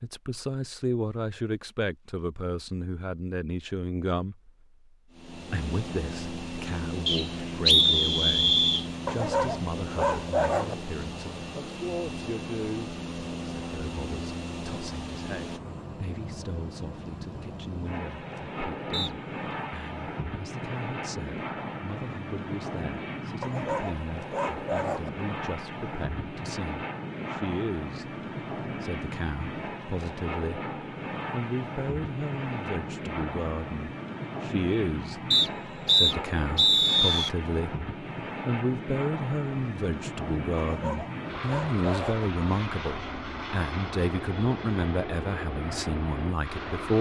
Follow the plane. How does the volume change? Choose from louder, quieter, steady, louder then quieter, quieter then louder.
steady.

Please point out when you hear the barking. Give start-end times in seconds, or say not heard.
9.1-10.8, 23.4-25.1, 40.5-42.2.